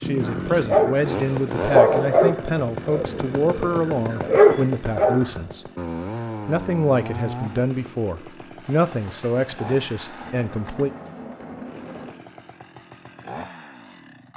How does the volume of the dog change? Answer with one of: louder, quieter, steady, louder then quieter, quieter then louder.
quieter then louder.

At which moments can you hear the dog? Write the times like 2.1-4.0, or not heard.
0.2-5.3.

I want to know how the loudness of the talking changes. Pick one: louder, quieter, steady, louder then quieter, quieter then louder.
steady.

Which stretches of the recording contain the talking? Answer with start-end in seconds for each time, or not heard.
0.0-5.7, 6.5-10.9.